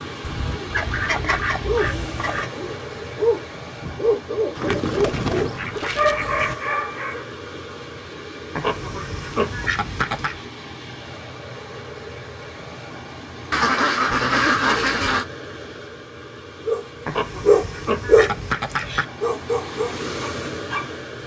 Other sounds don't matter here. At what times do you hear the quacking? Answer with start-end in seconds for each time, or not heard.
0.2-2.5, 4.5-6.5, 8.6-10.4, 13.5-15.2, 17.1-19.1.